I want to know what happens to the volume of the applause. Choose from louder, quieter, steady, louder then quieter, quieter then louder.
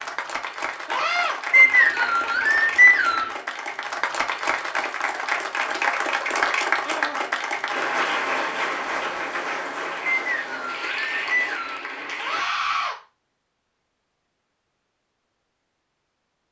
louder then quieter.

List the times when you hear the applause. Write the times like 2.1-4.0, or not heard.
0.0-12.4.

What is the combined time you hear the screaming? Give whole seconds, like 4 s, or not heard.
2 s.